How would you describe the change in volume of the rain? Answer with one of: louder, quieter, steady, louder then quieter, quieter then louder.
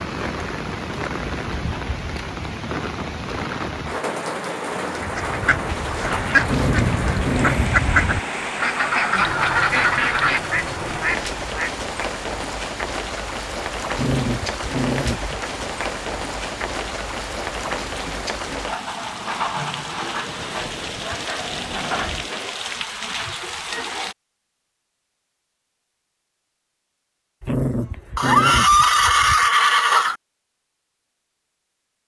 steady.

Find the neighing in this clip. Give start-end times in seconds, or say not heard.
28.1-30.1.